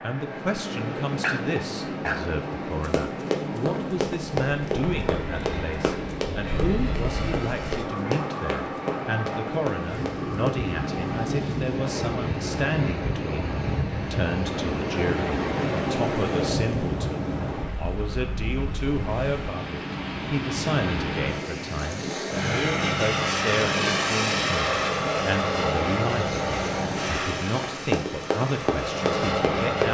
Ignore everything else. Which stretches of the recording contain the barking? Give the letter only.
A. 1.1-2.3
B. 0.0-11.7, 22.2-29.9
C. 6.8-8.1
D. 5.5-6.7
A.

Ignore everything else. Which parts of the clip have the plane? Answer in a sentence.
You can hear the plane from 0.0 to 11.7 s and from 22.2 to 29.9 s.